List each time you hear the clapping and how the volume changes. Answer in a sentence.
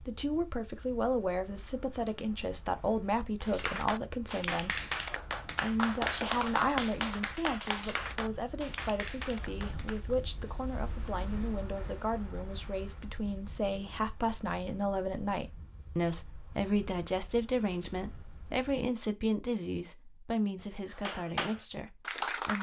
You can hear the clapping from 3.4 to 10.2 s, getting quieter; and briefly from 20.9 to 22.5 s.